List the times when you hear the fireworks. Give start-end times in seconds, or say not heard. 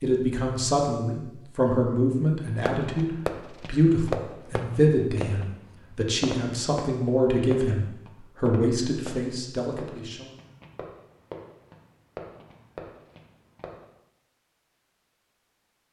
2.6-13.8.